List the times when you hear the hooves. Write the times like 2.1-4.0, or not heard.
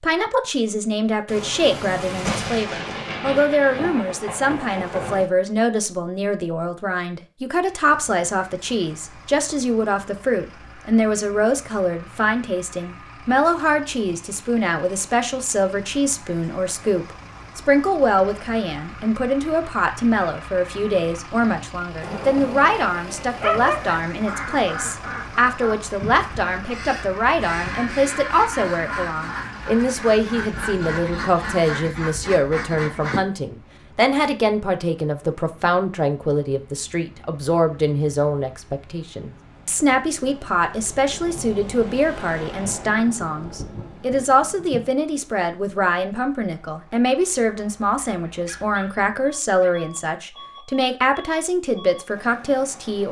not heard.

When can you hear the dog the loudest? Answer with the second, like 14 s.
24 s.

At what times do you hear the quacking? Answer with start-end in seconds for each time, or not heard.
24.1-33.2.